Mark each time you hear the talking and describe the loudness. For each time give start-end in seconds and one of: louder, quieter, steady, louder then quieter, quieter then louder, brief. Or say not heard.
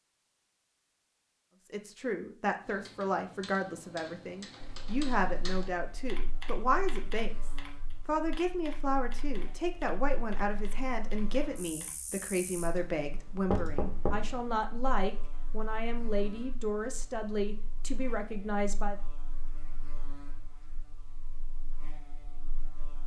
1.7-19.0 steady.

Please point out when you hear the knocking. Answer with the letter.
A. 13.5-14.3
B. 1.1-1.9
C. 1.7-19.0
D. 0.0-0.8
A.